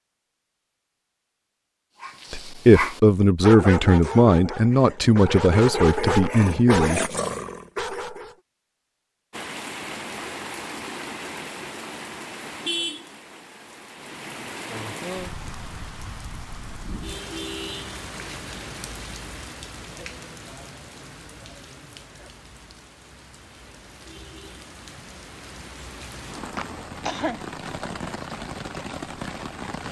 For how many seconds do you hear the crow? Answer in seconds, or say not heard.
not heard.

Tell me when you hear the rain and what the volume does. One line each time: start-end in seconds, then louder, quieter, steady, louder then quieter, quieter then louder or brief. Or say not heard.
9.3-29.8 quieter then louder.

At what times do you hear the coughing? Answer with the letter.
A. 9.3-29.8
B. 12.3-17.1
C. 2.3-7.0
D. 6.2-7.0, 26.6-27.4
D.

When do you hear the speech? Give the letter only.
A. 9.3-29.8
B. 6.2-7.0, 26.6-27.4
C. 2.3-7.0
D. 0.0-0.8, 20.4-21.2
C.